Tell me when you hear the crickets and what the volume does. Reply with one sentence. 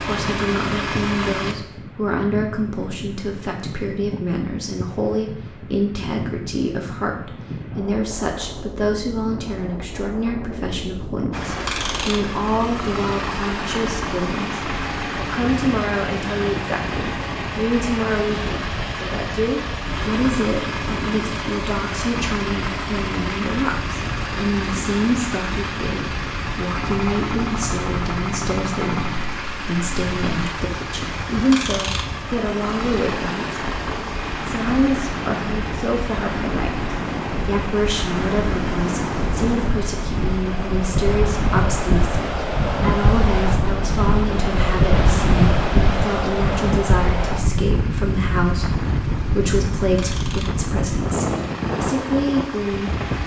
You can't hear the crickets here.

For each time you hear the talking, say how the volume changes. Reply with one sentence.
You can hear the talking from 0.0 to 53.0 s, at a steady volume.